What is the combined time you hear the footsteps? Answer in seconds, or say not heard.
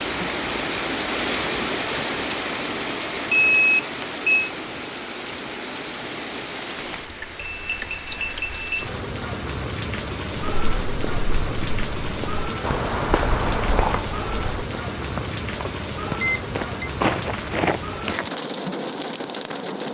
8 s.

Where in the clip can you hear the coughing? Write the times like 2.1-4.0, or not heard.
not heard.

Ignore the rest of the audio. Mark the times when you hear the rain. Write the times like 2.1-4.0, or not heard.
0.0-19.9.